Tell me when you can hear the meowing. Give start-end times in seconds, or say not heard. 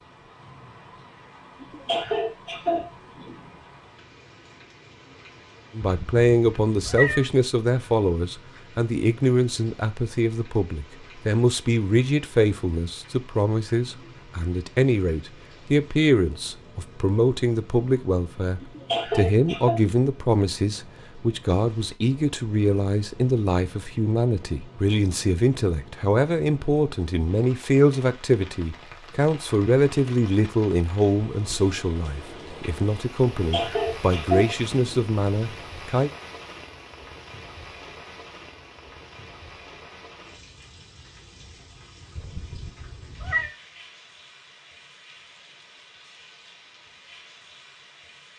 5.8-7.2, 42.1-43.5.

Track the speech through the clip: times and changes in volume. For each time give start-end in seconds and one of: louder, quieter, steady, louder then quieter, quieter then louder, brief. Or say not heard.
5.8-36.1 steady.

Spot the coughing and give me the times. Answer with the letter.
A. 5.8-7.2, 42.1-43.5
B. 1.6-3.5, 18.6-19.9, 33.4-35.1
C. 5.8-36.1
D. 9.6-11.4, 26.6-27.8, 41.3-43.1
B.